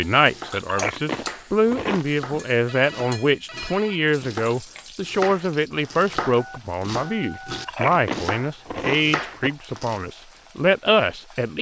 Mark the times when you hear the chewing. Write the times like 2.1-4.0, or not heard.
0.5-2.0, 7.5-9.5.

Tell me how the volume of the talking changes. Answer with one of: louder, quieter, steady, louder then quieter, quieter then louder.
steady.